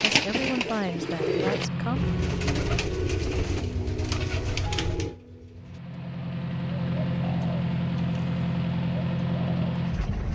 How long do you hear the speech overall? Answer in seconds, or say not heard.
2 s.